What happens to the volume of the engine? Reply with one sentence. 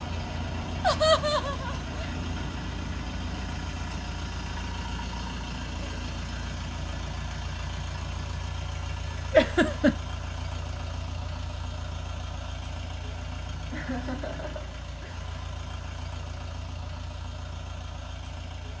The loudness of the engine goes down.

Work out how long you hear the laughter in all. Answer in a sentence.
The laughter can be heard for 3 seconds in total.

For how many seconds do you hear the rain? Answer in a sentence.
You can't hear the rain here.